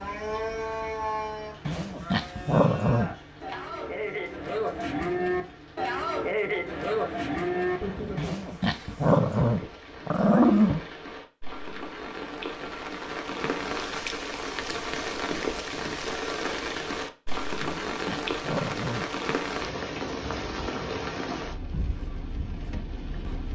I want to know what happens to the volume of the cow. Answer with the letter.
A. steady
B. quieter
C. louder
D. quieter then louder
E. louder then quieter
D.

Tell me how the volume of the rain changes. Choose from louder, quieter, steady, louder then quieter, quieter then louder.
louder.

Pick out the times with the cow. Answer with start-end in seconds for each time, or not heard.
0.0-8.4.